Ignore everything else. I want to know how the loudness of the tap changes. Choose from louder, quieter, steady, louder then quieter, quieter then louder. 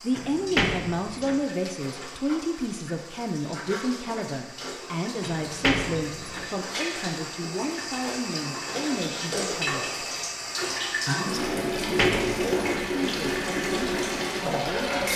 louder.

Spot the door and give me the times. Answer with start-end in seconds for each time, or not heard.
0.1-1.4, 5.2-6.5, 11.7-12.8.